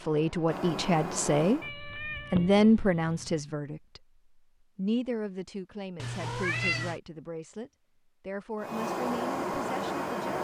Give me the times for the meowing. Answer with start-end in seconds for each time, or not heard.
1.6-3.4, 6.0-7.0.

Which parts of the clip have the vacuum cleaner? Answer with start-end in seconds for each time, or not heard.
0.0-1.7, 8.6-10.3.